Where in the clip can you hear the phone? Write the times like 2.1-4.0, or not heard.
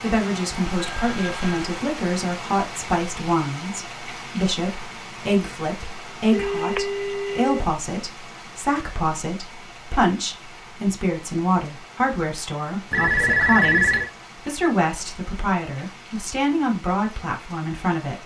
0.8-1.6, 6.3-7.7, 12.9-14.1.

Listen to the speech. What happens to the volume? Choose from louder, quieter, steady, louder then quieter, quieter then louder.
steady.